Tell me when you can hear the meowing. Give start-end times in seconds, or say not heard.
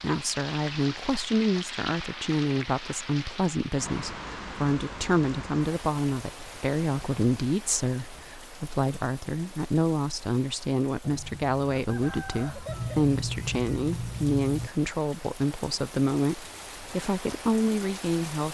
12.7-14.7.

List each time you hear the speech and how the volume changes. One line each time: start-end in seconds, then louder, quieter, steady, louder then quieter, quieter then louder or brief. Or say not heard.
0.0-18.4 steady.